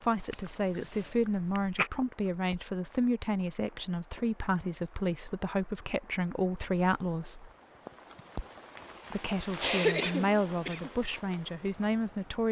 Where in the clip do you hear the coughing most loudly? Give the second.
10 s.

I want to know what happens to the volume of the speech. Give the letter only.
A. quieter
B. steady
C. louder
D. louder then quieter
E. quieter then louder
B.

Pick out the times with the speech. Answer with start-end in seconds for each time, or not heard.
0.0-7.5, 9.1-12.4.